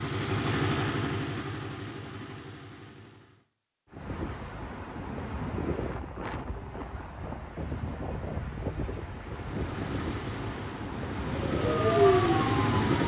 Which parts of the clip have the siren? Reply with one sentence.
You can hear the siren from 11.4 to 13.0 s.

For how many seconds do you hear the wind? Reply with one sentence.
You can hear the wind for 9 seconds altogether.